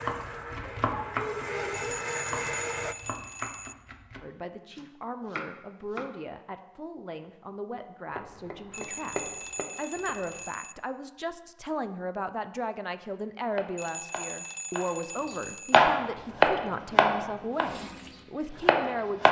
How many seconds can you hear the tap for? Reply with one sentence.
The tap can be heard for 6 seconds in total.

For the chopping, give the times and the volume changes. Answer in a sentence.
The chopping can be heard from 0.0 to 6.1 s, getting quieter then louder; briefly from 8.1 to 10.4 s; and from 13.6 to 19.2 s, getting louder then quieter.